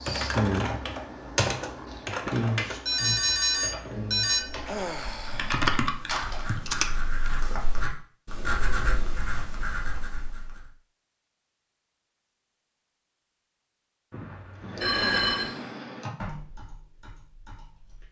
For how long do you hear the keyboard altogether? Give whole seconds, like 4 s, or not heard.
11 s.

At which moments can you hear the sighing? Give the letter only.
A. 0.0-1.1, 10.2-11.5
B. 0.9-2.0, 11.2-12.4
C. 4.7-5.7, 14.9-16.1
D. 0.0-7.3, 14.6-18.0
C.